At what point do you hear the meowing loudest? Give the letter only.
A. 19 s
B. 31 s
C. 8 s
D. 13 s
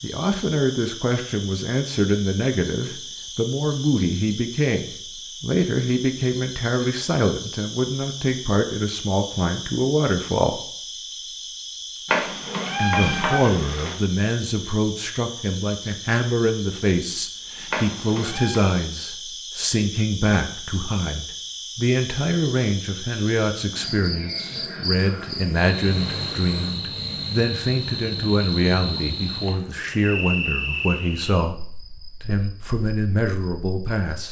D.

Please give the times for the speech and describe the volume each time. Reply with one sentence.
The speech can be heard from 0.0 to 10.6 s, at a steady volume; from 12.8 to 31.6 s, at a steady volume; and briefly from 32.2 to 34.2 s.